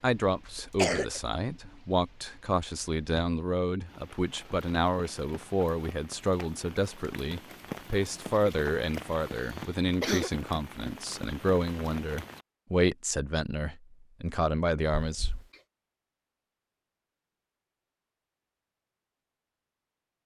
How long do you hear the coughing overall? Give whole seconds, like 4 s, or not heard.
3 s.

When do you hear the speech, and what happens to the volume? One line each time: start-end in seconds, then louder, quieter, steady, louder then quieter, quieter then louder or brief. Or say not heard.
0.0-15.3 steady.